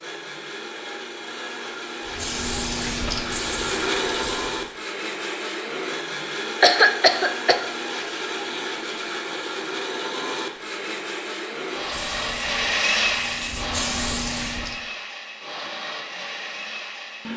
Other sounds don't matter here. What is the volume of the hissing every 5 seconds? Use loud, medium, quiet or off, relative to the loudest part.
loud, off, loud, off.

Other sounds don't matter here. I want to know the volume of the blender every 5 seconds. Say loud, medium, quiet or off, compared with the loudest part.
loud, loud, loud, medium.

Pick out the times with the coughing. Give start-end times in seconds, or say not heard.
6.6-7.6.